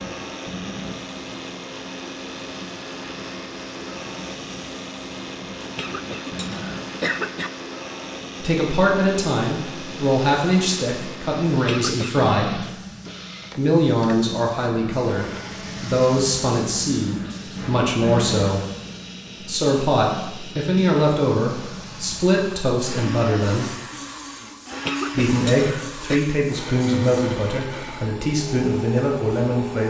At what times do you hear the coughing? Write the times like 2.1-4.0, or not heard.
5.6-7.5, 11.5-12.2, 24.7-26.2.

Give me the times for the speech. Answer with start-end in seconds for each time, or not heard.
8.4-12.7, 13.6-18.6, 19.4-23.8, 25.1-29.8.